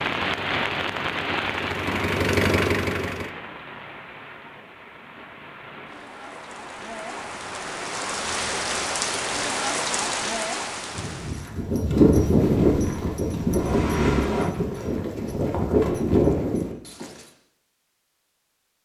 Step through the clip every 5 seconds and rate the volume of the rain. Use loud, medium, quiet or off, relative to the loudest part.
loud, loud, loud, off.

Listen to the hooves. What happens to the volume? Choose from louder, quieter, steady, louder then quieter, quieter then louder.
quieter then louder.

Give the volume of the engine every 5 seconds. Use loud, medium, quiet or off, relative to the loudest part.
loud, off, loud, off.